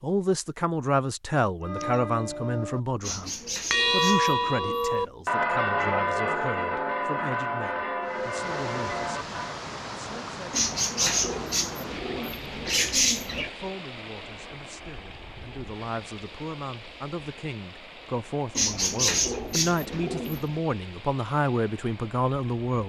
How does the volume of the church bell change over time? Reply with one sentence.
The volume of the church bell goes up, then down.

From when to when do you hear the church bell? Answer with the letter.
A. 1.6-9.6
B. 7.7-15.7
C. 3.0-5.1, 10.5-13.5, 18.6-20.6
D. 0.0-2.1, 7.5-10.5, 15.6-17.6
A.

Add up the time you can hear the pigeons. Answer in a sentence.
You can hear the pigeons for 7 seconds altogether.